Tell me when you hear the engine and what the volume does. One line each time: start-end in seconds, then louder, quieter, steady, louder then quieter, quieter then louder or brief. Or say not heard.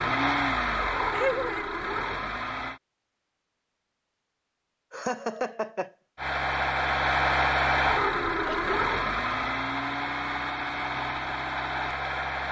0.0-2.8 brief
6.2-12.4 quieter.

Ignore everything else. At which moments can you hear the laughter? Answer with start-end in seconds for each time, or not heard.
1.1-1.7, 4.9-5.9, 8.3-8.8.